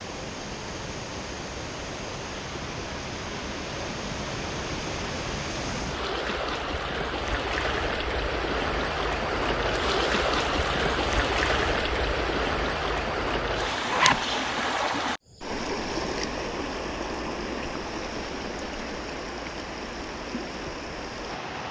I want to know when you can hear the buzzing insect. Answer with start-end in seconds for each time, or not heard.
not heard.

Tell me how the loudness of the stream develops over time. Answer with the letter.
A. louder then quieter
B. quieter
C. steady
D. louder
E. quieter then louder
A.